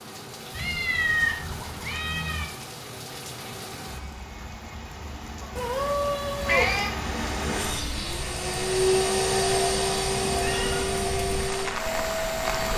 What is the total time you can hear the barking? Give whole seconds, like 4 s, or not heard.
not heard.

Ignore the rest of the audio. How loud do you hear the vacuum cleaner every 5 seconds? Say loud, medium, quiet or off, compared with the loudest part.
off, loud, loud.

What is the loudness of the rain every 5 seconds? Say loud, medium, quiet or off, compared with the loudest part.
medium, loud, loud.